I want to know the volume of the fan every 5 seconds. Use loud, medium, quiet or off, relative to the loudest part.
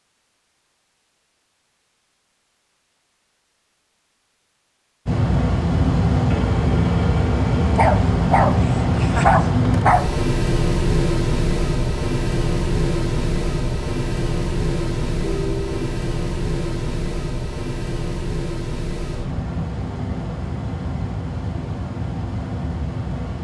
off, loud, loud, medium, medium.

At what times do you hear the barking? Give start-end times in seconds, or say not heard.
7.8-10.1.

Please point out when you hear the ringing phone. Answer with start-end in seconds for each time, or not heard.
6.2-7.7, 15.2-15.9.